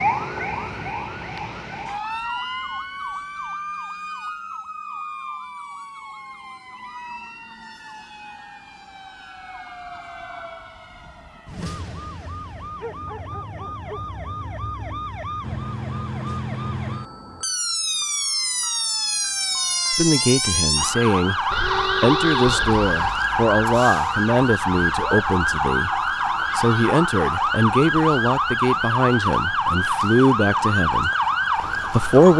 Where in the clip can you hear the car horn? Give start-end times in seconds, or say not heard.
21.5-23.2.